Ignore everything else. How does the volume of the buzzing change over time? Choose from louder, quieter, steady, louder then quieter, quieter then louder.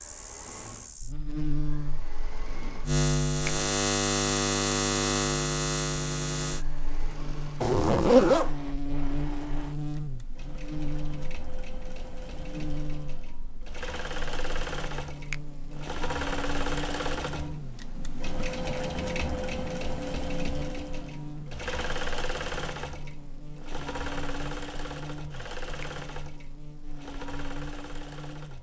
quieter.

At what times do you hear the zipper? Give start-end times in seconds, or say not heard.
7.6-8.5.